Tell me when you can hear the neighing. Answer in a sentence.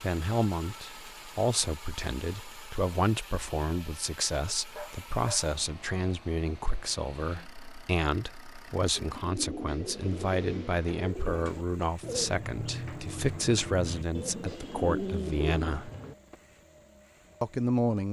You can't hear the neighing here.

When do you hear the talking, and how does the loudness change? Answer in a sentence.
The talking can be heard from 0.0 to 15.9 s, at a steady volume; and briefly from 17.4 to 18.0 s.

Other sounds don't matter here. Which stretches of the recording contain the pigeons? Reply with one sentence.
The pigeons can be heard from 8.9 to 16.4 s.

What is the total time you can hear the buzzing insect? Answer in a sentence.
The buzzing insect can't be heard in this clip.